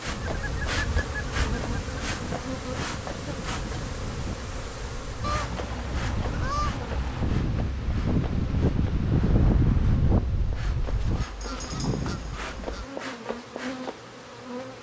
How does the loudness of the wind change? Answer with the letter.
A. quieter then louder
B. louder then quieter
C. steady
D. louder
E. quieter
D.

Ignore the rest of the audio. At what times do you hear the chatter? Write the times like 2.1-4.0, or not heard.
not heard.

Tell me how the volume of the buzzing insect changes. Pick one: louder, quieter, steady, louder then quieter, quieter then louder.
quieter then louder.